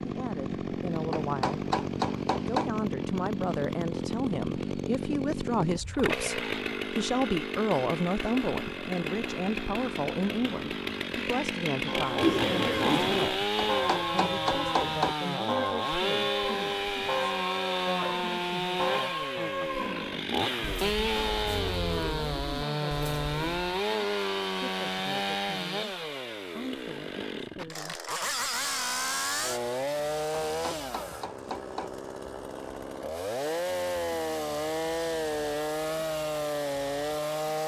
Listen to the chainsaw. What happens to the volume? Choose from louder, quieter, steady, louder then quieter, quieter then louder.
steady.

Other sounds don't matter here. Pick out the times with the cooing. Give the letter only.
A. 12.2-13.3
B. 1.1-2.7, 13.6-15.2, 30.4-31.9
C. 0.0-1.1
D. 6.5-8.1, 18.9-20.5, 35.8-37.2
A.